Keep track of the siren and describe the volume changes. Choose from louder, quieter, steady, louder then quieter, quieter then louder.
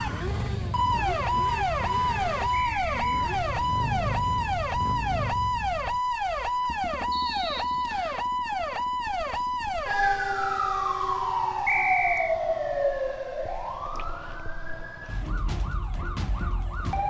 quieter.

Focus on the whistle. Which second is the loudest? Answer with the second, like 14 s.
12 s.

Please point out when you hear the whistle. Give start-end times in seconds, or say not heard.
2.5-3.2, 7.1-8.2, 11.7-12.3.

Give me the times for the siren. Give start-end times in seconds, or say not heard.
0.0-17.0.